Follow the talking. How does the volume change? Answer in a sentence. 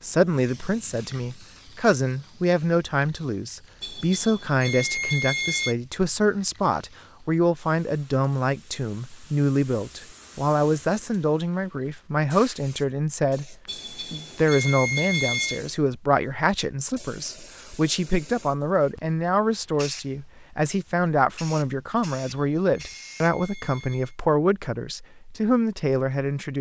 The volume of the talking stays about the same.